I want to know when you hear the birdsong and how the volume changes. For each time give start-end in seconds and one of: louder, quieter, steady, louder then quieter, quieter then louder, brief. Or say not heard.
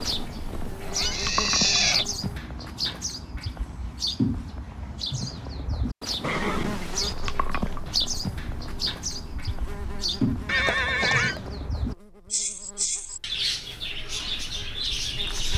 0.0-15.5 steady.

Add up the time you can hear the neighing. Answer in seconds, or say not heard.
3 s.